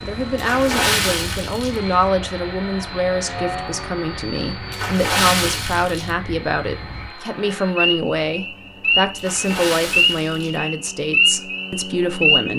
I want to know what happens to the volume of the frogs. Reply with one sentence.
The volume of the frogs goes up.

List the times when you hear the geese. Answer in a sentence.
The geese can't be heard in this clip.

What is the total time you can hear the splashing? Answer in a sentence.
The splashing can be heard for 4 seconds in total.